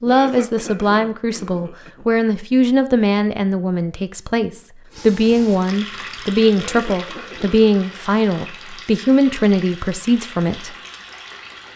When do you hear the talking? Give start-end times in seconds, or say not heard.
0.0-10.8.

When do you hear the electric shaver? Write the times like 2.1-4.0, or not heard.
not heard.